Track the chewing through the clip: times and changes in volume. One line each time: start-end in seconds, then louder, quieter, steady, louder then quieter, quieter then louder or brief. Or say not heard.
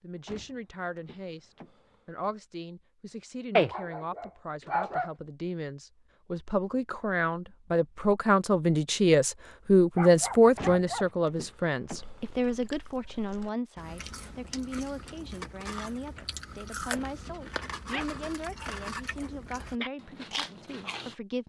11.8-21.1 louder.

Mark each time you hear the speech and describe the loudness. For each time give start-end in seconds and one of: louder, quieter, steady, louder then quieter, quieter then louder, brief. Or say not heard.
0.0-21.4 louder then quieter.